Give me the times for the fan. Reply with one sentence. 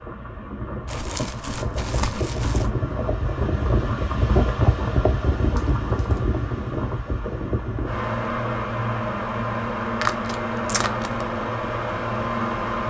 The fan can be heard from 0.0 to 12.8 s.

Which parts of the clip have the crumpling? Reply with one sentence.
You can hear the crumpling from 0.8 to 2.7 s, from 5.5 to 6.2 s and from 10.0 to 11.2 s.